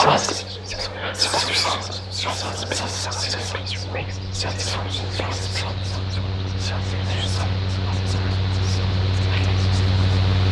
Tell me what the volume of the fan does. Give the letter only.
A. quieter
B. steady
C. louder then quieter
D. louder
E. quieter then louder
D.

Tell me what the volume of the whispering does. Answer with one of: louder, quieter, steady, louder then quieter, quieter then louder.
quieter.